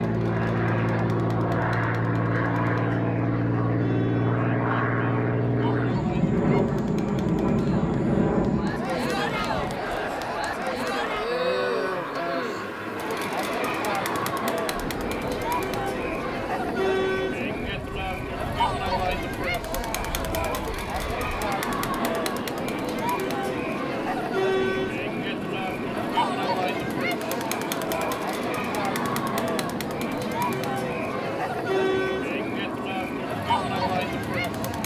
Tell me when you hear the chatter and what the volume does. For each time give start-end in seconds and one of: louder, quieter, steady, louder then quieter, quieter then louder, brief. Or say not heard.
0.0-34.8 louder.